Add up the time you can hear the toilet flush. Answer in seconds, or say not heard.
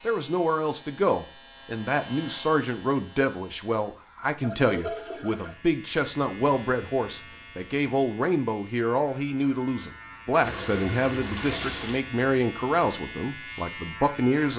3 s.